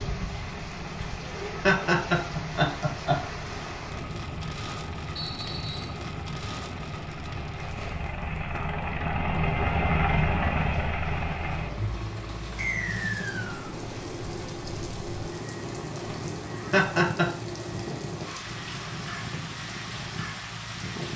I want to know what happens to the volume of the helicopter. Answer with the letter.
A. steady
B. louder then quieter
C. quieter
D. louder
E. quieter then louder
B.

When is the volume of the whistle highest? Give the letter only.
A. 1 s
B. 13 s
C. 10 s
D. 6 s
B.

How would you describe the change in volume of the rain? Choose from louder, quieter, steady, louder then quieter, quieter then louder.
quieter then louder.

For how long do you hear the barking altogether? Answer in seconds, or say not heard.
not heard.